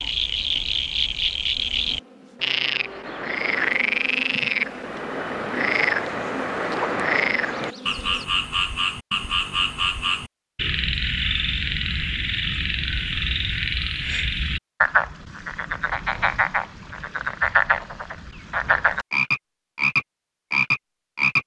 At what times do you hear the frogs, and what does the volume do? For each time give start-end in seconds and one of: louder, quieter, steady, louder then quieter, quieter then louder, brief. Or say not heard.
0.0-21.4 steady.